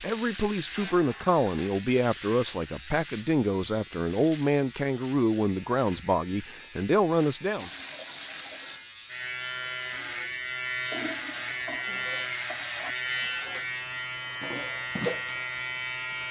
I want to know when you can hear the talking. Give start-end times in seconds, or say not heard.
0.0-7.7.